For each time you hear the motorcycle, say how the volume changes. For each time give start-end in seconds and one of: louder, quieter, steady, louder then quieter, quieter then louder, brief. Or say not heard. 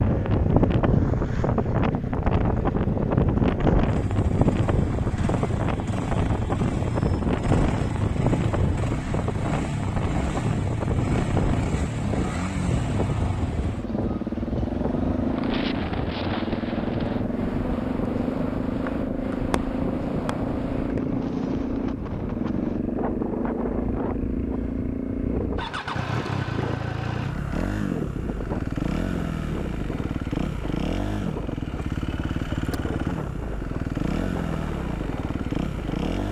0.0-36.2 steady.